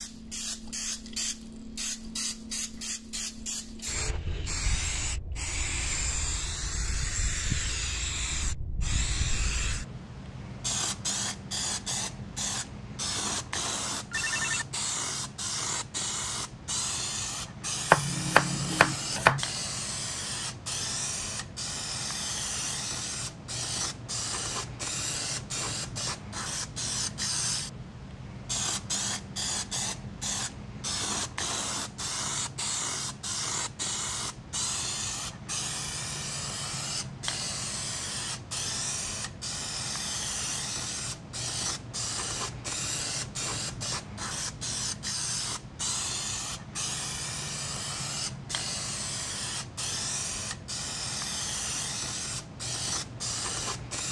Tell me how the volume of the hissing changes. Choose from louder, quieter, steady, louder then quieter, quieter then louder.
steady.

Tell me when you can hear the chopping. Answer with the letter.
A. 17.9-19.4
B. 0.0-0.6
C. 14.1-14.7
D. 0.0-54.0
A.